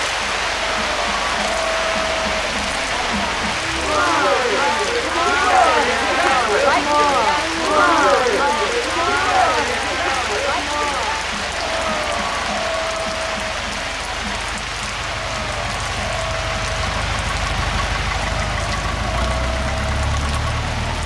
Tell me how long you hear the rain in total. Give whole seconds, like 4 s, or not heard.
21 s.